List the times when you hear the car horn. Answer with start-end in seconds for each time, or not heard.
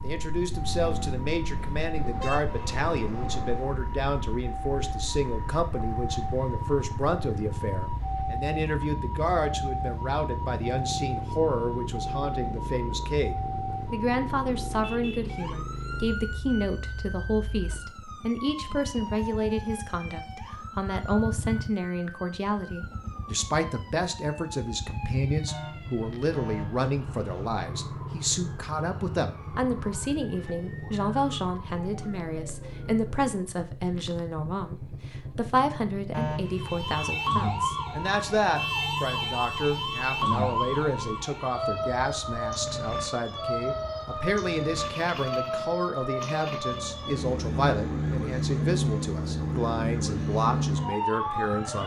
1.9-3.7, 25.4-27.5, 36.1-36.8.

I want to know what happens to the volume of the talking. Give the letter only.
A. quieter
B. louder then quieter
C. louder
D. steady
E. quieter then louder
D.